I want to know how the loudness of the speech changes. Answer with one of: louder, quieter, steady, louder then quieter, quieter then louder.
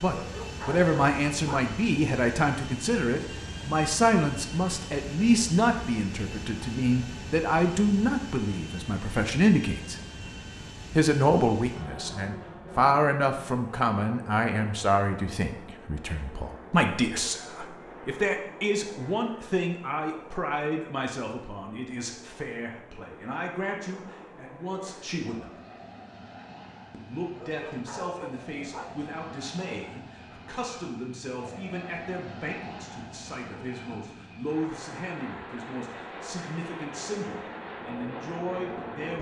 quieter.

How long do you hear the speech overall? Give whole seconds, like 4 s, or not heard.
37 s.